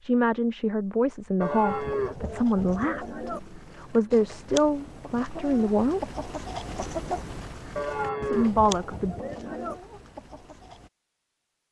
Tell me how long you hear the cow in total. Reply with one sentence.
The cow can be heard for 4 seconds in total.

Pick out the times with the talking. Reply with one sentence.
The talking can be heard from 0.0 to 6.1 s and from 8.2 to 9.2 s.